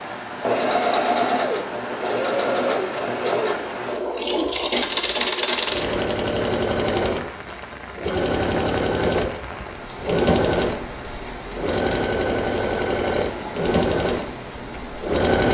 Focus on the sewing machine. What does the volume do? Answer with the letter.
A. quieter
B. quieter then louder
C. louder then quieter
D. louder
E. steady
E.